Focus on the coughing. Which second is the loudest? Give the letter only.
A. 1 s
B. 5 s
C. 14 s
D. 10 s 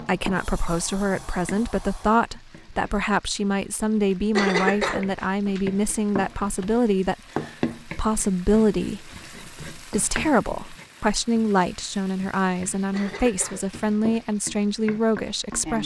B.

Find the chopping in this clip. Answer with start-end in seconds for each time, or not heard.
not heard.